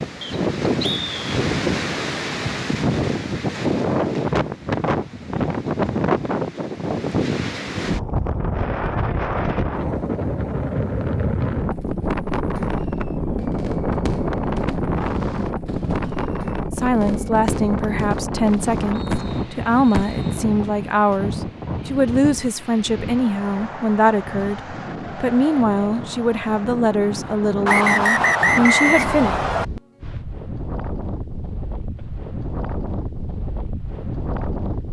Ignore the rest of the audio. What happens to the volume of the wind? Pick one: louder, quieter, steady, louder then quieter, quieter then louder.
quieter.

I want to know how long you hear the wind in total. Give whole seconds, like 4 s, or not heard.
35 s.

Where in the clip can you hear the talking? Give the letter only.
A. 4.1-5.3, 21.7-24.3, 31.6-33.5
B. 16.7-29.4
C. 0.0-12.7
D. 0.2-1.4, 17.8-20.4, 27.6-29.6
B.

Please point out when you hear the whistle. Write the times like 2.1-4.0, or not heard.
0.2-1.4, 17.8-20.4, 27.6-29.6.